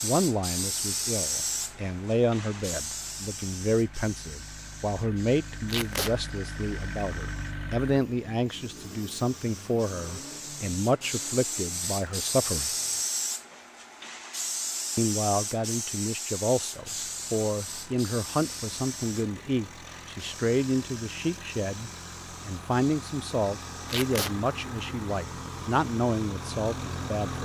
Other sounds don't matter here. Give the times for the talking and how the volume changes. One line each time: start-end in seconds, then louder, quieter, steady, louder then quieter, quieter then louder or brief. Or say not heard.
0.0-12.7 steady
14.9-27.4 steady.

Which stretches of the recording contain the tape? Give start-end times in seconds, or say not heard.
5.7-6.2, 23.9-24.4.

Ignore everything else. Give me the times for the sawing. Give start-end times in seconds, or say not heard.
not heard.